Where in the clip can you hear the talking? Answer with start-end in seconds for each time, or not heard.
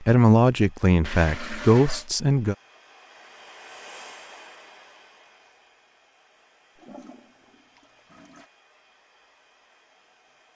0.0-2.5.